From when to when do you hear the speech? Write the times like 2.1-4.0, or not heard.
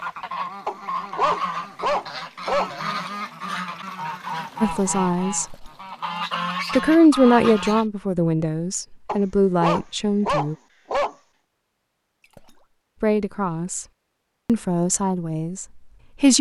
4.6-5.7, 6.8-10.6, 13.0-13.8, 14.4-16.3.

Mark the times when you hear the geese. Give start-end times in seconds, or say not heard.
0.0-7.8.